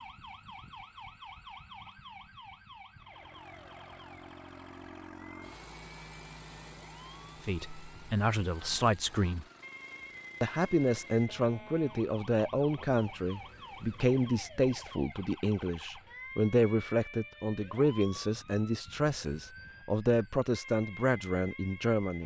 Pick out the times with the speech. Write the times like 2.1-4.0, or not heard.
7.4-9.4, 10.4-22.2.